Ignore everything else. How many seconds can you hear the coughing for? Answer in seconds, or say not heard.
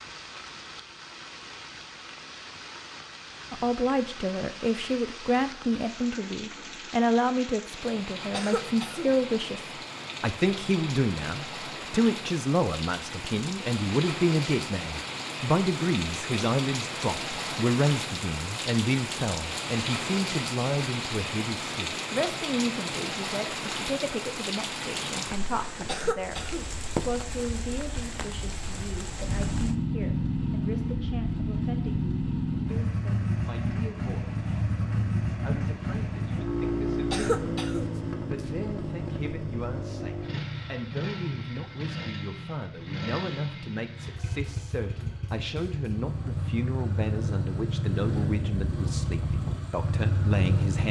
3 s.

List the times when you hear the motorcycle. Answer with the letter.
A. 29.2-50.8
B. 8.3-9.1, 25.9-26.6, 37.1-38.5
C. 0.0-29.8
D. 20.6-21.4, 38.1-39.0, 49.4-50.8
A.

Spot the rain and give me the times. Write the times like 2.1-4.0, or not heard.
0.0-29.8.